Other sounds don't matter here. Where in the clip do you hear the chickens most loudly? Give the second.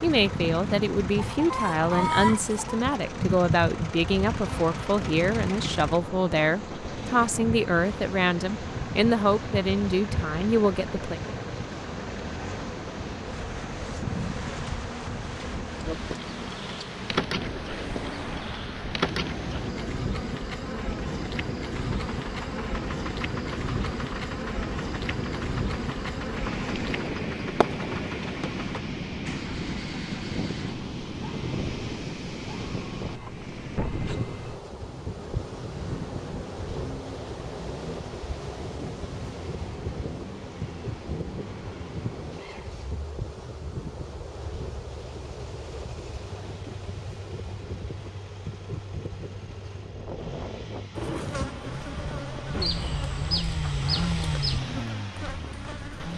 2 s.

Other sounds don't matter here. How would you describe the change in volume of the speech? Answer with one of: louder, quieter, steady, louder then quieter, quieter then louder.
steady.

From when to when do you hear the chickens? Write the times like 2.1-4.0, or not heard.
1.1-2.6, 52.6-54.6.